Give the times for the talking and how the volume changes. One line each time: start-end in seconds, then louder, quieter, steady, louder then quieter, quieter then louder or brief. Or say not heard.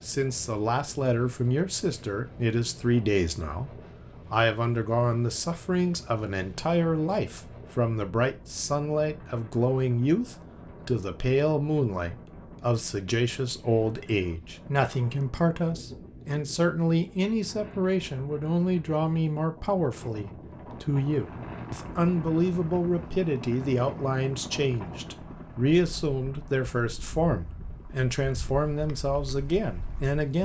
0.0-30.4 steady.